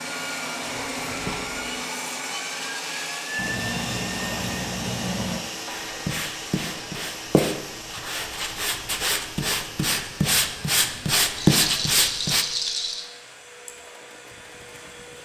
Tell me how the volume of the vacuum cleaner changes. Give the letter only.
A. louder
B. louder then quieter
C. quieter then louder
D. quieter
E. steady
D.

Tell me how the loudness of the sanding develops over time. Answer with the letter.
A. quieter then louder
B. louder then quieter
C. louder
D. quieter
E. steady
C.